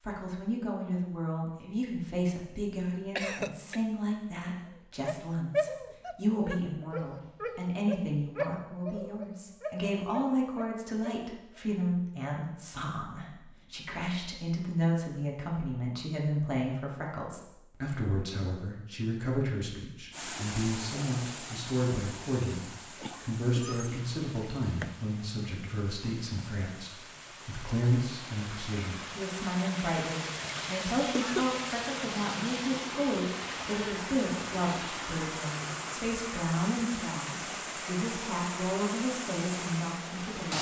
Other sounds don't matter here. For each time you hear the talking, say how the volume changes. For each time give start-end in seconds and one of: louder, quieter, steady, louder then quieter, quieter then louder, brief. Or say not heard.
0.0-40.5 steady.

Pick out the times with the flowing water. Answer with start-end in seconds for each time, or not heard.
20.1-40.5.